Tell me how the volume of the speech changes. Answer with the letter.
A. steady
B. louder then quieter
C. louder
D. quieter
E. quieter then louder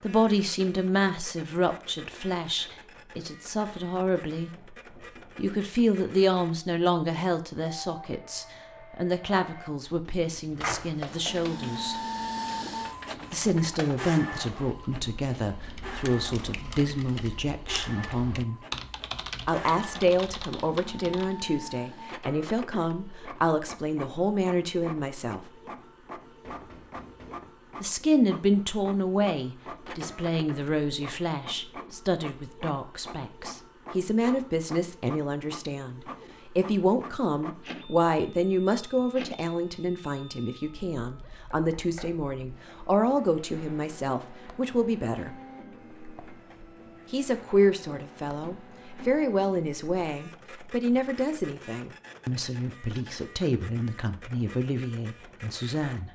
A.